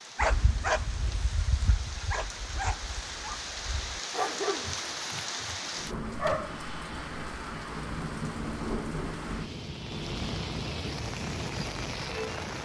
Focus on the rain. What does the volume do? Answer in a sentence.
The volume of the rain goes up.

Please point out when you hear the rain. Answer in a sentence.
You can hear the rain from 0.0 to 12.6 s.